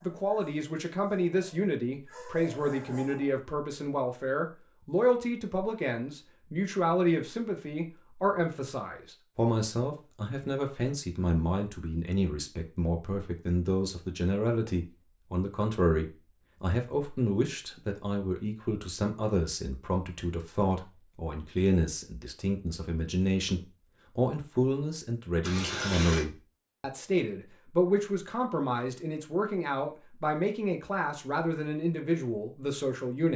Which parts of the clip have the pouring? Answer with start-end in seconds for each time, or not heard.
25.4-26.2.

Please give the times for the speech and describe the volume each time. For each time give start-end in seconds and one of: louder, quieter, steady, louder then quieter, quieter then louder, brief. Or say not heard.
0.0-33.3 steady.